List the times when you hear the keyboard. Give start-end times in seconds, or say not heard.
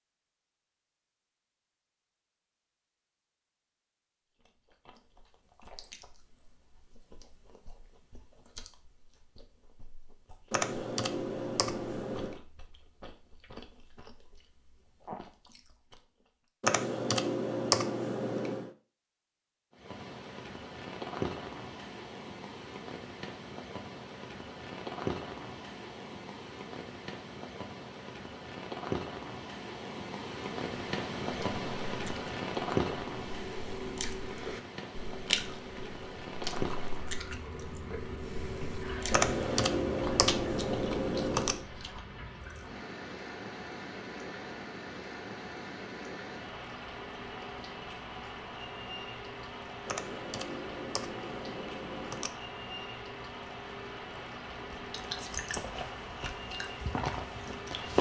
10.5-12.4, 16.6-18.7, 39.1-41.6, 49.9-52.3.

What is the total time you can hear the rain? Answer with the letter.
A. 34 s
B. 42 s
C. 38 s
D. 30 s
C.